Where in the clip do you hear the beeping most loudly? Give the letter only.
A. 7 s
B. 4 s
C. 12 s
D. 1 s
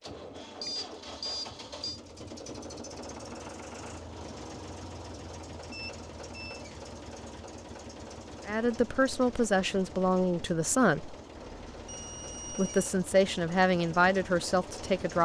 D.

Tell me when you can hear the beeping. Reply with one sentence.
The beeping can be heard from 0.6 to 2.0 s, from 5.7 to 6.7 s and from 11.3 to 12.9 s.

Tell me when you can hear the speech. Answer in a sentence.
You can hear the speech from 8.4 to 11.2 s and from 12.5 to 15.1 s.